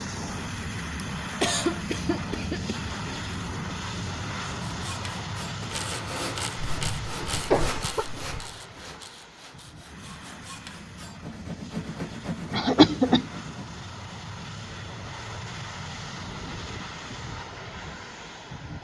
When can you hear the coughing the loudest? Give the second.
13 s.